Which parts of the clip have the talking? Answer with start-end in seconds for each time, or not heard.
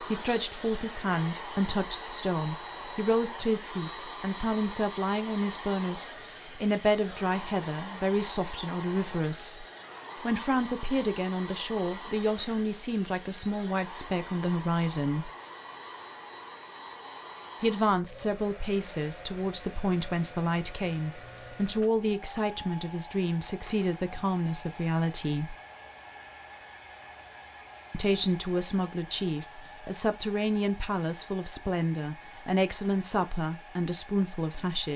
0.1-15.3, 17.6-25.6, 27.9-34.9.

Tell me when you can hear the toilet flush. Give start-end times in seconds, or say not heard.
not heard.